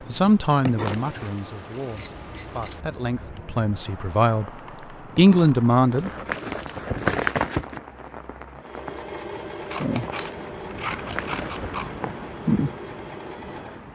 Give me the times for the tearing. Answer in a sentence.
You can hear the tearing from 0.7 to 1.3 s, from 5.2 to 7.8 s and from 10.0 to 11.8 s.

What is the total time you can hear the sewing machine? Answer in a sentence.
The sewing machine can be heard for 5 seconds in total.